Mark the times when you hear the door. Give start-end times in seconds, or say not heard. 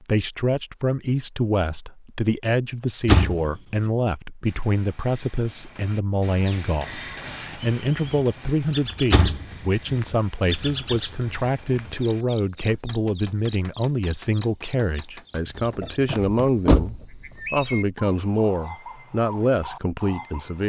3.0-3.5, 9.1-9.9, 15.4-17.0.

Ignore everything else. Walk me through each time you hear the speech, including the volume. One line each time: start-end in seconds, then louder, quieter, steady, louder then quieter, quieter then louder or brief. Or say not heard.
0.0-20.6 steady.